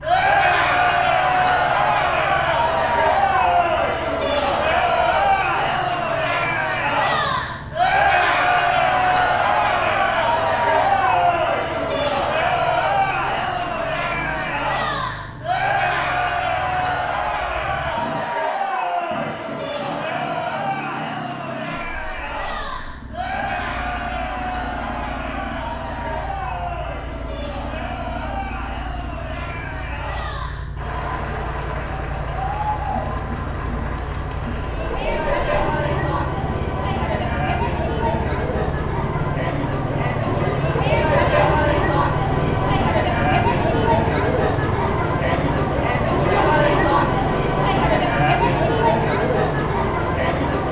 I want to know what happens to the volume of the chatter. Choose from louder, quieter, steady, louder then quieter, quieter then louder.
quieter then louder.